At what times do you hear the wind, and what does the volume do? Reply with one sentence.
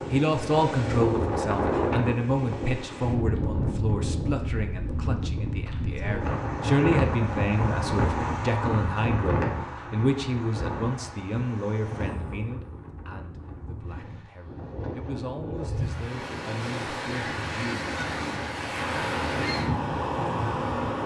The wind can be heard from 0.0 to 21.0 s, getting quieter then louder.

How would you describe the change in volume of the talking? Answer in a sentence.
The loudness of the talking goes down.